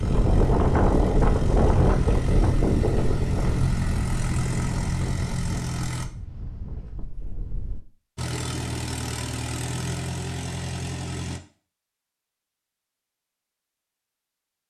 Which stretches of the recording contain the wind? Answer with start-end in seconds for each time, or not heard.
0.0-7.8.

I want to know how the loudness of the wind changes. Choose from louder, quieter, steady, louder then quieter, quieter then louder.
quieter.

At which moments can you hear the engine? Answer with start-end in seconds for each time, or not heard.
0.0-6.1, 8.2-11.4.